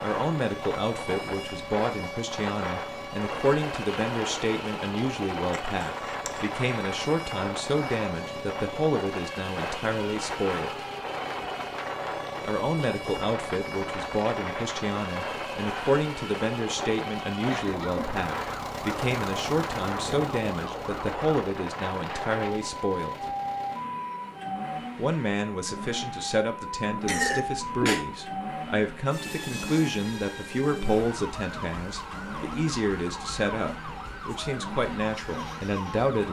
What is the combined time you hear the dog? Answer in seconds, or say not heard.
not heard.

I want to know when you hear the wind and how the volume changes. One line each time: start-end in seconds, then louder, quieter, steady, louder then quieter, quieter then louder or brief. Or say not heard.
0.0-22.6 steady.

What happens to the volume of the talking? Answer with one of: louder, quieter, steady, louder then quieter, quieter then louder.
steady.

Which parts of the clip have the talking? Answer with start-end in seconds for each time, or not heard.
0.0-10.7, 12.4-23.1, 24.9-36.2.